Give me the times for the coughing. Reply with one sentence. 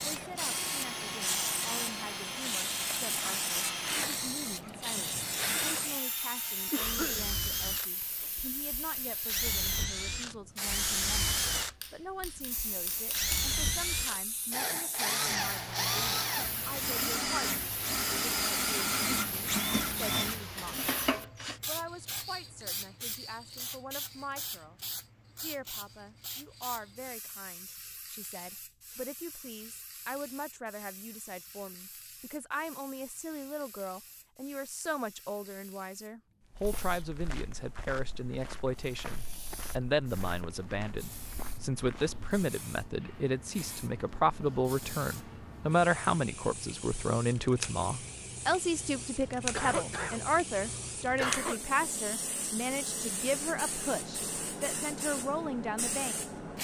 The coughing can be heard from 6.7 to 7.2 s and from 49.5 to 51.6 s.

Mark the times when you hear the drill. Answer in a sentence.
You can hear the drill from 0.0 to 21.6 s.